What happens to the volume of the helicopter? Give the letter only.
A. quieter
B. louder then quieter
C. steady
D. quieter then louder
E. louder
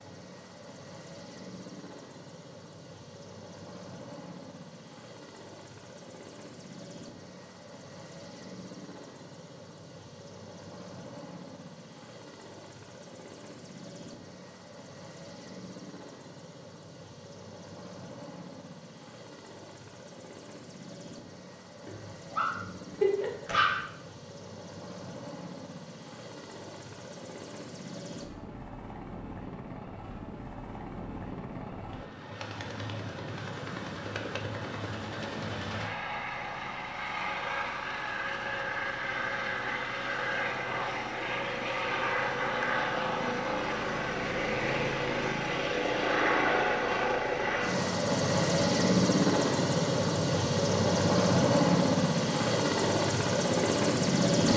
E.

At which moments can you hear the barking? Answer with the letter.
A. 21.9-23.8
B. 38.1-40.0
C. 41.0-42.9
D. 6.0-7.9
A.